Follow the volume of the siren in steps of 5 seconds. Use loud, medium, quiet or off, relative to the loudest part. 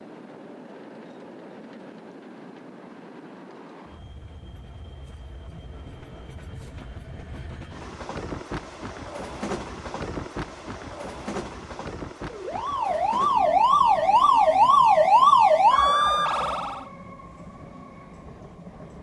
off, off, loud, loud.